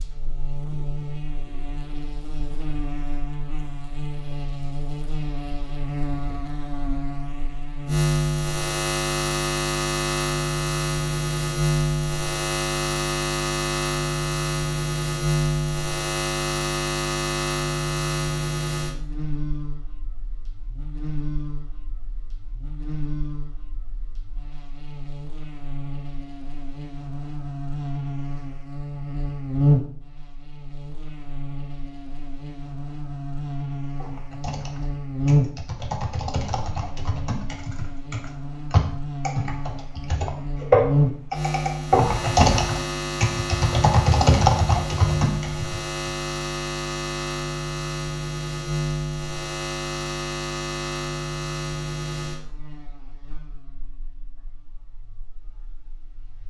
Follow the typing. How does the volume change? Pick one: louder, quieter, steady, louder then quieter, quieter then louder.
louder.